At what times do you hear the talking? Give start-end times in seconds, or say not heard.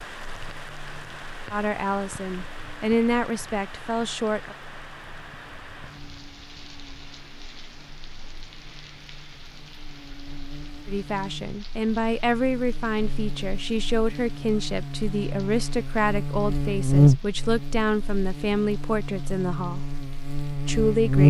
1.5-4.5, 10.8-19.8, 20.6-21.2.